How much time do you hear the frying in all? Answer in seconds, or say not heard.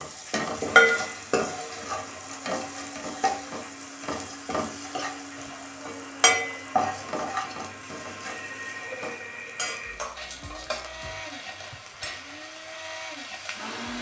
14 s.